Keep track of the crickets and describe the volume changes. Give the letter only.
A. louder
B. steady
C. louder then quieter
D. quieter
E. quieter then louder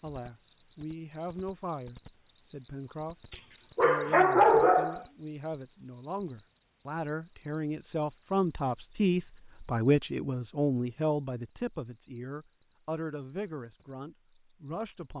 D.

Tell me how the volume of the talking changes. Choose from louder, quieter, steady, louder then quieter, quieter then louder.
louder then quieter.